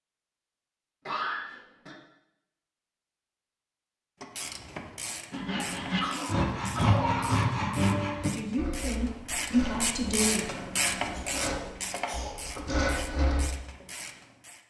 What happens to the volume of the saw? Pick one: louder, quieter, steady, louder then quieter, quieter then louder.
quieter then louder.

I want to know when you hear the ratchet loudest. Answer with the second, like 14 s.
11 s.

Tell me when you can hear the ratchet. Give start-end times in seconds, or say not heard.
4.2-14.6.